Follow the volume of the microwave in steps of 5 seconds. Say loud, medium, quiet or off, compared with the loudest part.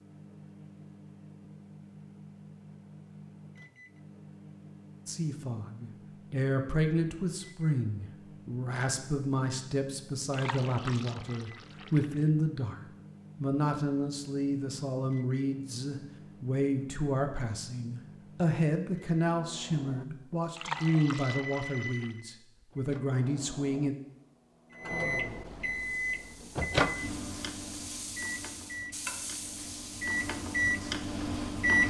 quiet, quiet, quiet, quiet, quiet, medium, loud.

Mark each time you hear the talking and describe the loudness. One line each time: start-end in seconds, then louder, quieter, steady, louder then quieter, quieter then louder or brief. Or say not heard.
5.0-12.8 steady
13.4-23.9 steady.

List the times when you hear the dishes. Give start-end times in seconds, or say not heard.
not heard.